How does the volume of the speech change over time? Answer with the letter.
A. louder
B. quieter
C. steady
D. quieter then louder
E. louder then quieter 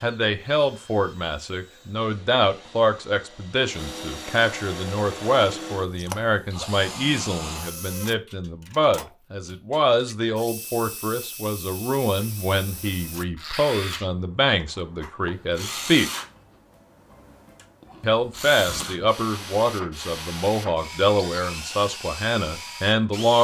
C.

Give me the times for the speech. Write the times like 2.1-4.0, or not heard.
0.0-16.1, 18.0-23.3.